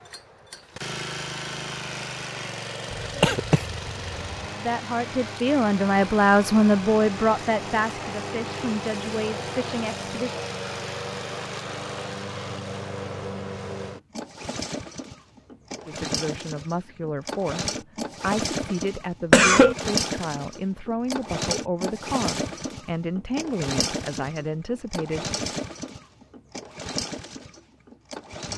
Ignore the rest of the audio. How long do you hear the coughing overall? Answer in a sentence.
You can hear the coughing for 2 seconds altogether.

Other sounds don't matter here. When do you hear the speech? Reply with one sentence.
The speech can be heard from 4.5 to 10.3 s and from 15.8 to 25.3 s.